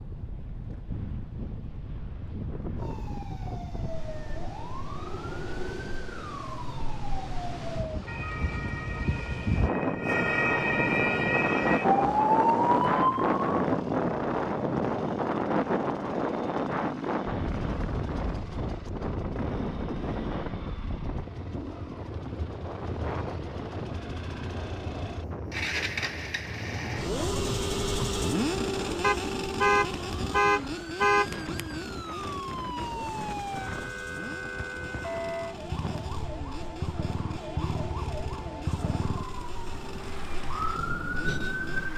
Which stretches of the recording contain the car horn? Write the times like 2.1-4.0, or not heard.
29.0-31.6.